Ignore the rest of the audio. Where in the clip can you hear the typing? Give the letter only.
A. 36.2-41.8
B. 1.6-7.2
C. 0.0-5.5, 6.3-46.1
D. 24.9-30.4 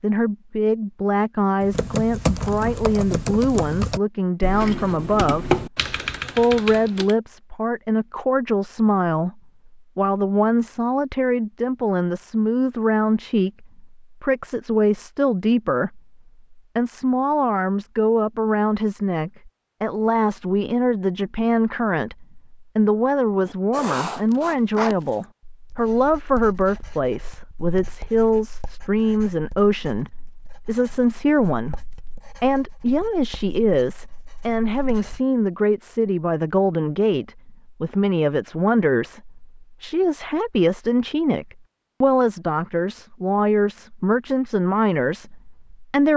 B.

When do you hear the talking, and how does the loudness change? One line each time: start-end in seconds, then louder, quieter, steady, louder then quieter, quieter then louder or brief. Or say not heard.
0.0-5.5 steady
6.3-46.1 steady.